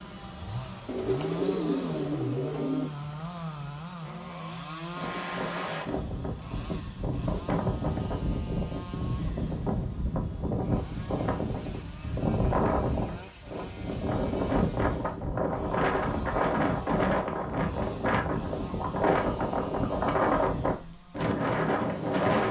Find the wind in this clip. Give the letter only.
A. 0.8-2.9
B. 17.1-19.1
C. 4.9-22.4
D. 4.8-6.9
C.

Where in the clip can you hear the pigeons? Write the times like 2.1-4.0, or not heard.
0.8-2.9.